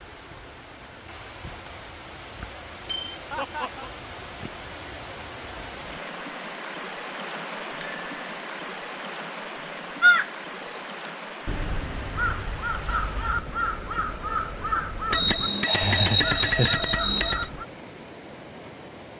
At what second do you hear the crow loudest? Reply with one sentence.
The loudest moment of the crow is at 10 seconds.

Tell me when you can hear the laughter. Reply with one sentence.
The laughter can be heard from 3.3 to 3.9 s and from 15.7 to 16.8 s.